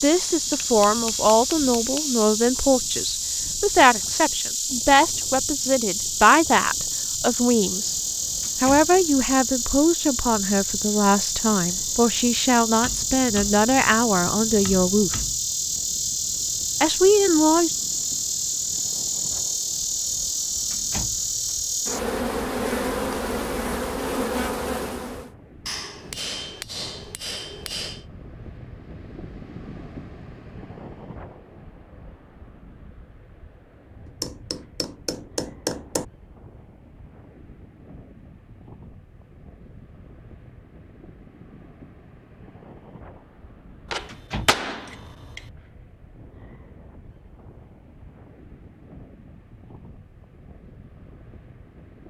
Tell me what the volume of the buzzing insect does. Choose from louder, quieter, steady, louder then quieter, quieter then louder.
steady.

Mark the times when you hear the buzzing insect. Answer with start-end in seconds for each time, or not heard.
0.0-25.3.